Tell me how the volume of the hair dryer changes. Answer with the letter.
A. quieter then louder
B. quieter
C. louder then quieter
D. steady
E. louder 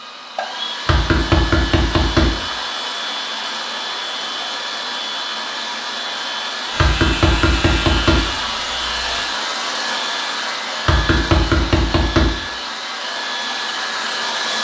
D.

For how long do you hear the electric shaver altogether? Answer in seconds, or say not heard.
3 s.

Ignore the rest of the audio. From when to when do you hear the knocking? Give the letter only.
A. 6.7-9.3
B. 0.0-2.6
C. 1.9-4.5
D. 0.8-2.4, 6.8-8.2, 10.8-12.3
D.